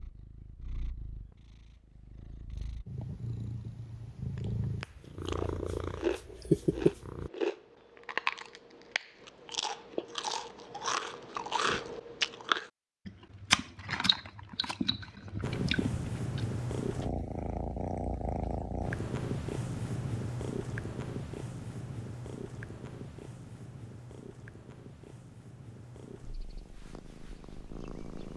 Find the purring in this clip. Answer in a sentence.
You can hear the purring from 0.0 to 7.3 s and from 15.4 to 28.3 s.